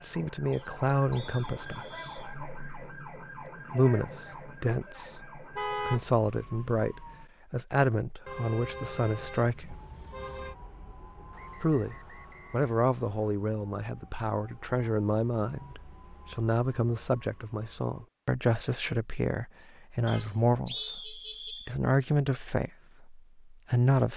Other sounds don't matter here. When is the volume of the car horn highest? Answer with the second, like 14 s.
6 s.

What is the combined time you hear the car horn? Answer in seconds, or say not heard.
4 s.